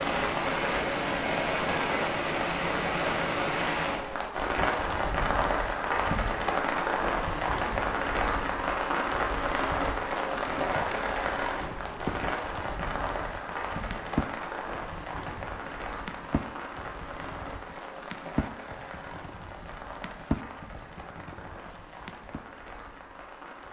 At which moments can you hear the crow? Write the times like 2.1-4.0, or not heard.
not heard.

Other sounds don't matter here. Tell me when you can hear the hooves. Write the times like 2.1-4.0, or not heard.
10.3-22.4.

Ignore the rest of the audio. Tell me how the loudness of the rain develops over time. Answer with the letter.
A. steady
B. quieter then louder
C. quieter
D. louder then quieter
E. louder
C.